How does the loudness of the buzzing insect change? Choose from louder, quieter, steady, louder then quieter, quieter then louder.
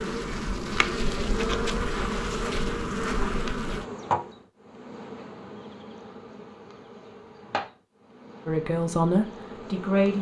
quieter.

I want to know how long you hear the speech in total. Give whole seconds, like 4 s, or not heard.
2 s.